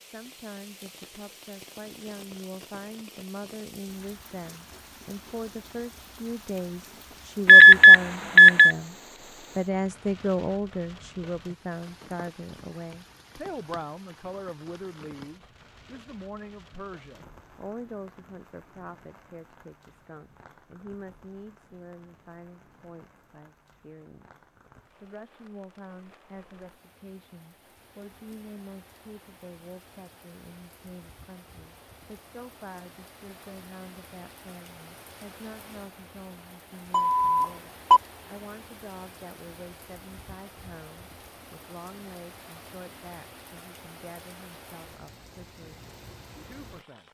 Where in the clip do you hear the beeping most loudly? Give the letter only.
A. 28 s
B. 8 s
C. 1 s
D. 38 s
B.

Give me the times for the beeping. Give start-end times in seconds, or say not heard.
7.5-8.8, 36.9-38.0.